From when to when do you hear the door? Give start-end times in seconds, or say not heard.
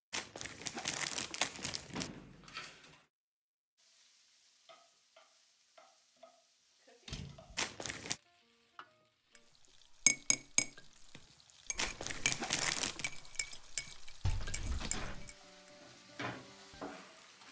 1.9-3.0, 7.0-7.7, 14.2-15.3.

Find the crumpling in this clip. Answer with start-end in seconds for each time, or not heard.
0.1-2.1, 7.5-8.2, 11.8-13.1.